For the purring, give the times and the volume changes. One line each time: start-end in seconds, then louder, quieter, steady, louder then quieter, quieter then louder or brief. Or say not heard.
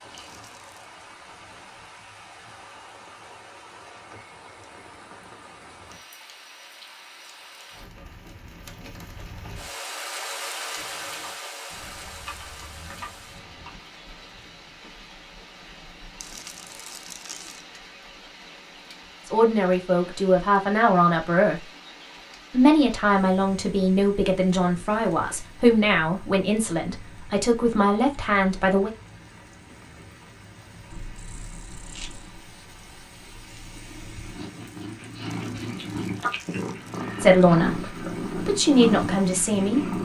30.9-39.9 louder.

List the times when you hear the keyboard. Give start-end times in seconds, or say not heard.
10.8-13.8.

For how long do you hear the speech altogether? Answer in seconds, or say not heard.
11 s.